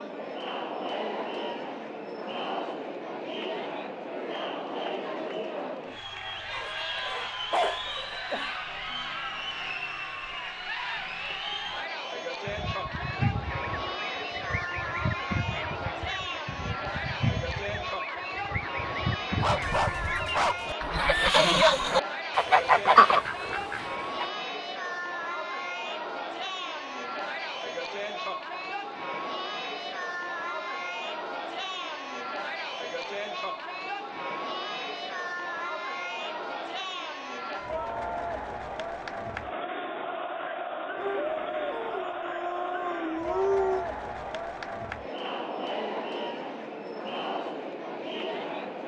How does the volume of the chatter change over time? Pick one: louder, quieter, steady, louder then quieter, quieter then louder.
steady.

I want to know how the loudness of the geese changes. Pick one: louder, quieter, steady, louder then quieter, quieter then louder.
louder.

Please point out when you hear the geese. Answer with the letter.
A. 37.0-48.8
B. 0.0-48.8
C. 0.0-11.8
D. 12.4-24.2
D.